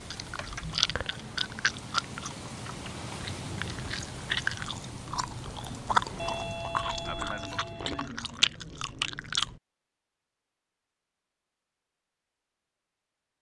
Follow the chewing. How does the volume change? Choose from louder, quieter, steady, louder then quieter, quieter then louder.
quieter then louder.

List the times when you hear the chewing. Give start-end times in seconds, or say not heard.
0.0-9.6.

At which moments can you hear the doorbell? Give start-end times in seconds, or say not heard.
6.2-8.1.